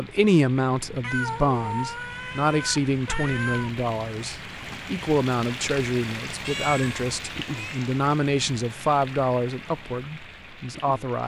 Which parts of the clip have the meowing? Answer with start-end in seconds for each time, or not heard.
1.0-3.7, 6.5-7.8.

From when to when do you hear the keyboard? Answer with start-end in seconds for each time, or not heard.
not heard.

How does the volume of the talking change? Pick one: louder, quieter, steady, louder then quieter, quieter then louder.
steady.